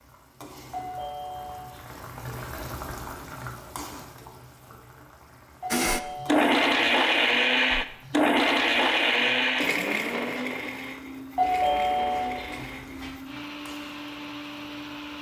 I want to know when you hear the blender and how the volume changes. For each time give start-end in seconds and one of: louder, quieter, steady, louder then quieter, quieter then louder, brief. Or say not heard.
5.7-15.1 quieter.